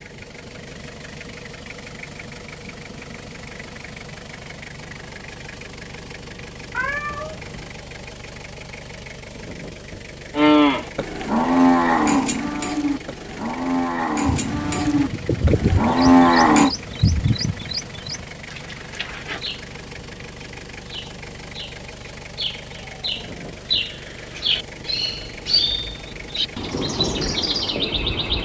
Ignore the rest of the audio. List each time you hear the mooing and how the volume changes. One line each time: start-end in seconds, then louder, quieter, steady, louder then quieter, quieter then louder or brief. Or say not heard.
10.3-16.8 quieter then louder.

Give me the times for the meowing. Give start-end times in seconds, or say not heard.
6.7-7.7.